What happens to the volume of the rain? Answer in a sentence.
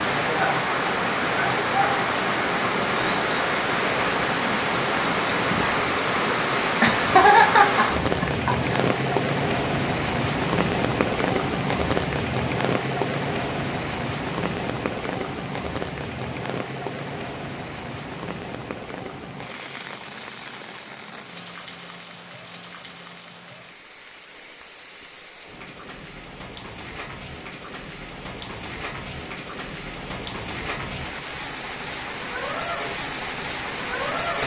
The loudness of the rain goes down, then up.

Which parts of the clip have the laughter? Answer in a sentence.
The laughter can be heard from 6.8 to 8.7 s.